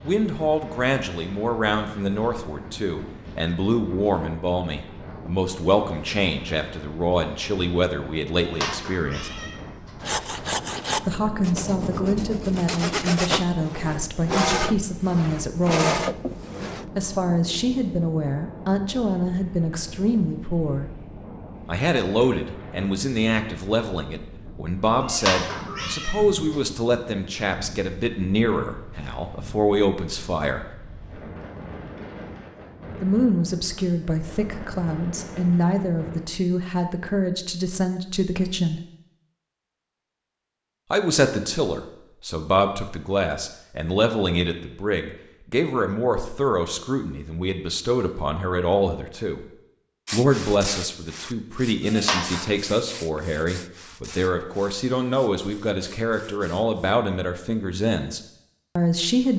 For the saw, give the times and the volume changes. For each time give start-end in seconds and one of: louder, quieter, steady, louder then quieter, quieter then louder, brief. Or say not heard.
10.0-16.9 quieter then louder
50.0-57.0 quieter.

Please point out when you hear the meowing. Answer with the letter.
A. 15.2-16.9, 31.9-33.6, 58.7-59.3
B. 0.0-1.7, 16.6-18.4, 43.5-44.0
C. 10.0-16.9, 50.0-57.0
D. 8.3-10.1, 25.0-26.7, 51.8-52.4
D.